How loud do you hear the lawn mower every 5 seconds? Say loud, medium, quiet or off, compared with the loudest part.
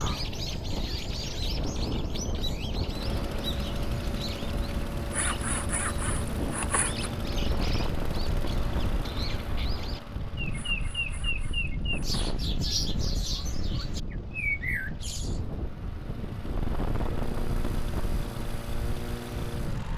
loud, loud, medium, loud.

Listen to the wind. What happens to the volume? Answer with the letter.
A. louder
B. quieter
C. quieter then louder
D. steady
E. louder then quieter
D.